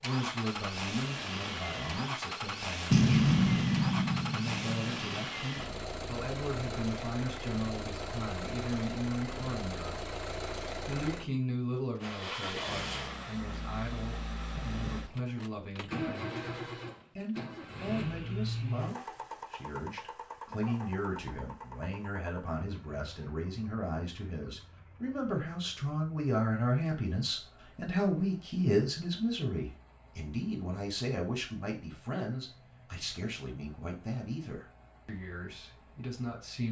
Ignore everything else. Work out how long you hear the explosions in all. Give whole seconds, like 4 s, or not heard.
2 s.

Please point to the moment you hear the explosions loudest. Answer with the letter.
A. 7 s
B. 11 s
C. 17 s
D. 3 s
D.